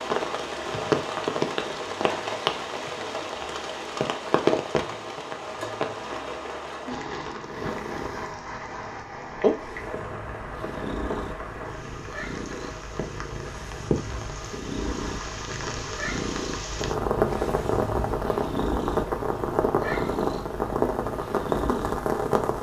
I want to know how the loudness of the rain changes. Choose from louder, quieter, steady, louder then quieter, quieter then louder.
quieter then louder.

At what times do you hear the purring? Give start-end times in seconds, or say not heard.
7.5-8.1, 9.4-22.5.